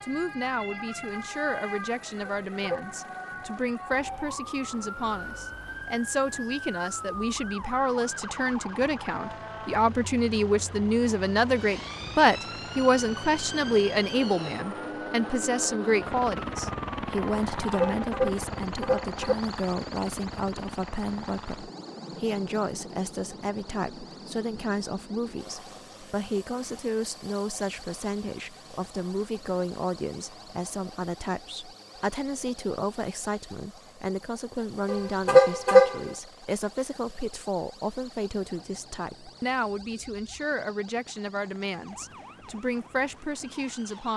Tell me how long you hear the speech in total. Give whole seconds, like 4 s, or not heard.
44 s.